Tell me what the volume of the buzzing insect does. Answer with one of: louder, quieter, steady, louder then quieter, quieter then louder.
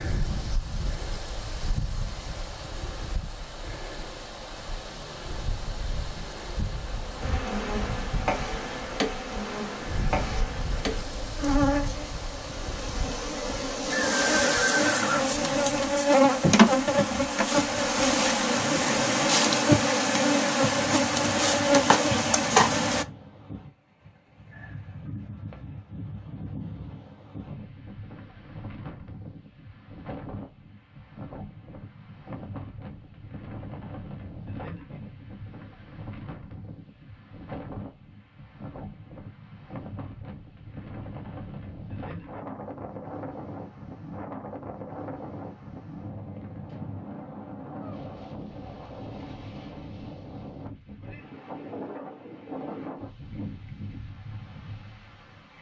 louder.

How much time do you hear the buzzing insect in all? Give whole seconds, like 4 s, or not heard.
16 s.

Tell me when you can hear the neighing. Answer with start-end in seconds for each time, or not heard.
13.9-15.3.